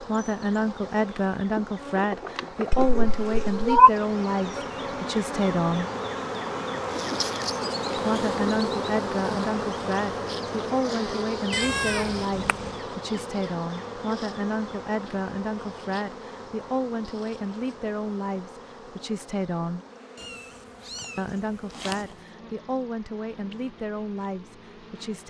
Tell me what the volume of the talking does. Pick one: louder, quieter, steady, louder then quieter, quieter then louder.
quieter.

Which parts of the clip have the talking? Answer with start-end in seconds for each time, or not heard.
0.0-5.9, 8.0-19.9, 21.1-25.2.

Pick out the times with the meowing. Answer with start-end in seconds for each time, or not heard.
2.7-3.9, 11.5-12.7, 20.1-22.1.